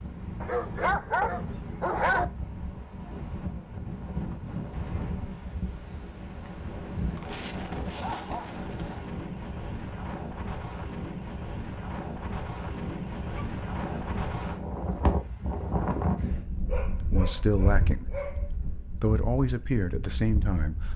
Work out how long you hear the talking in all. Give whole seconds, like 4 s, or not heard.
3 s.